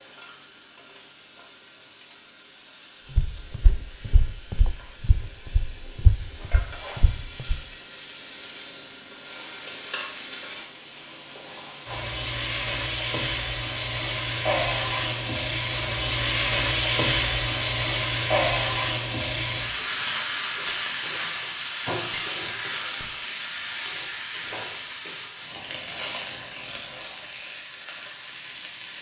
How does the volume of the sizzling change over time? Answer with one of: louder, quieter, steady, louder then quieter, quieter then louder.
louder then quieter.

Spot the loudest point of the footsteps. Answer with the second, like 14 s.
6 s.